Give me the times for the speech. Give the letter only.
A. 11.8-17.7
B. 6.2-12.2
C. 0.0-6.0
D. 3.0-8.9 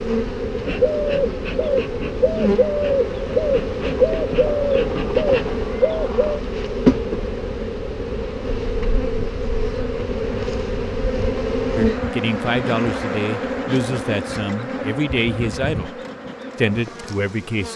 A.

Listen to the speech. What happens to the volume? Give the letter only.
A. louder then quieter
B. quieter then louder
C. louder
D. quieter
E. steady
E.